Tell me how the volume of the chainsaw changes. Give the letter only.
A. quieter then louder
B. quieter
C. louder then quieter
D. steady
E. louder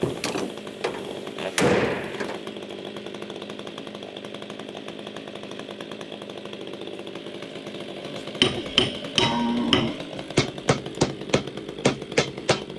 D.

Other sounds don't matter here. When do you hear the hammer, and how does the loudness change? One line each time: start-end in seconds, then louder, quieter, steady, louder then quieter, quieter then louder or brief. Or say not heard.
0.0-2.4 brief
8.1-12.7 steady.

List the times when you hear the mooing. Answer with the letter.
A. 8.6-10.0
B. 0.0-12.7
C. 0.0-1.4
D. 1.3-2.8
A.